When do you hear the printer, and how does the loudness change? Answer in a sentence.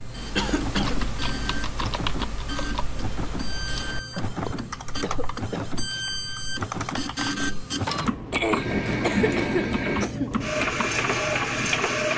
The printer can be heard from 0.0 to 12.1 s, getting louder.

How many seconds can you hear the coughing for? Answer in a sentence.
You can hear the coughing for 4 seconds altogether.